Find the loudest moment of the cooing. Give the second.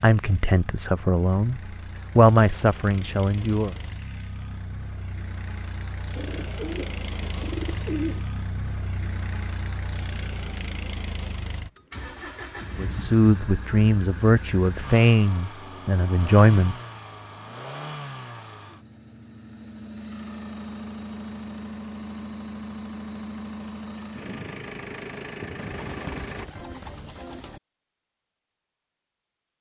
8 s.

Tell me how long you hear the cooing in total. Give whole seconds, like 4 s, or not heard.
4 s.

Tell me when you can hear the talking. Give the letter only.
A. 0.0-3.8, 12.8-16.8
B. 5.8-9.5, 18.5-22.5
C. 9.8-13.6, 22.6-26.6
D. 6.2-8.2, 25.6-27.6
A.